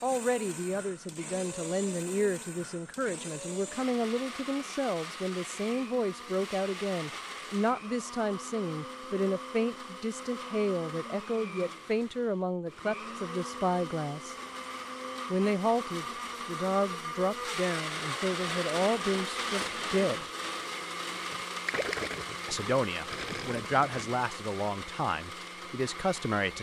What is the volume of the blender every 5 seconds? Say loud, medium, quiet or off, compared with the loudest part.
medium, medium, medium, loud, loud, medium.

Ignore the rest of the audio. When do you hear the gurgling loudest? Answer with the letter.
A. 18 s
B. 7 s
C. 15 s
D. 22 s
D.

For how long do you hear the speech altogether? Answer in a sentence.
The speech can be heard for 23 seconds in total.